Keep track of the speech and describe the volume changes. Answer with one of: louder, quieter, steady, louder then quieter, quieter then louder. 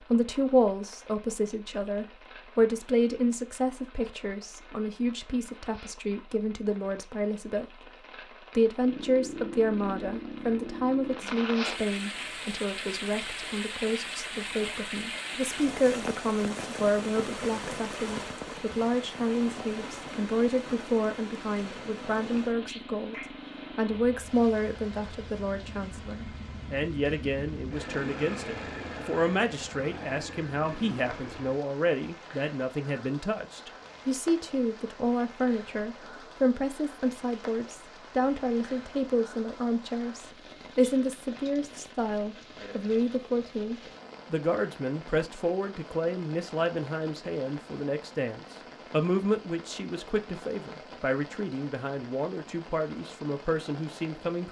steady.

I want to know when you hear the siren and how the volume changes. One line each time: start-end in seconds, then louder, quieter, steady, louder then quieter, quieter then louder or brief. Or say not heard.
not heard.